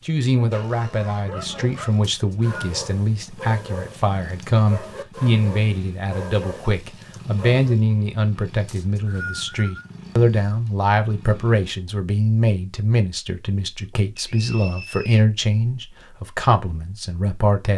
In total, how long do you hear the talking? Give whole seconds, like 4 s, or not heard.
18 s.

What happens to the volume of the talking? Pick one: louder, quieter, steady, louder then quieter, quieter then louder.
steady.